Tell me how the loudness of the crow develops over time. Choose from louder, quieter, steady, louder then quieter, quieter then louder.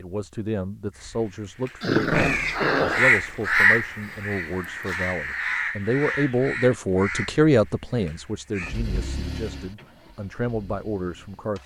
louder then quieter.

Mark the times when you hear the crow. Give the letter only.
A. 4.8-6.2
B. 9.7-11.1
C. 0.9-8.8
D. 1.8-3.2
C.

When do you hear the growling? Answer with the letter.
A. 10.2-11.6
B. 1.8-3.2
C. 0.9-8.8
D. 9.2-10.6
B.